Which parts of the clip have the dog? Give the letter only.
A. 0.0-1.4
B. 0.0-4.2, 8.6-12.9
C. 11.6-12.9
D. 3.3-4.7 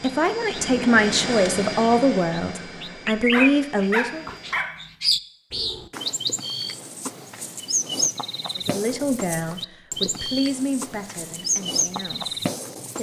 D.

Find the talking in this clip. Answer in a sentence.
You can hear the talking from 0.0 to 4.2 s and from 8.6 to 12.9 s.